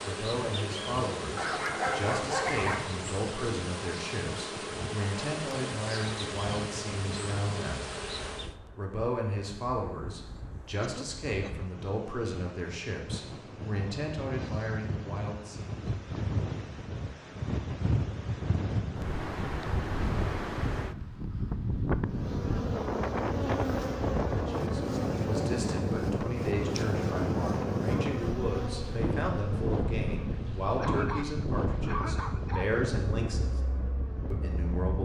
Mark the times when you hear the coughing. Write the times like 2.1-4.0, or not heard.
10.8-11.7, 30.8-32.7.